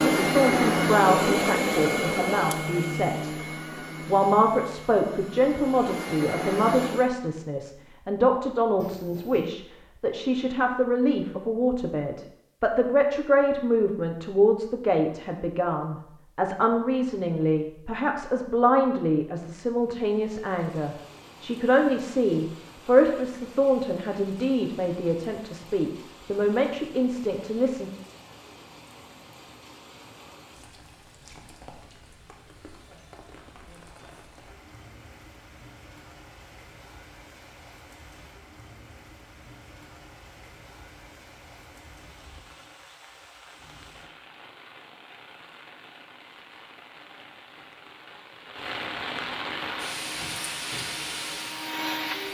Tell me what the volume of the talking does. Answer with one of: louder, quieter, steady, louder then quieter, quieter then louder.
steady.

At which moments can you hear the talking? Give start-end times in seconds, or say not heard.
0.2-3.3, 4.0-27.9.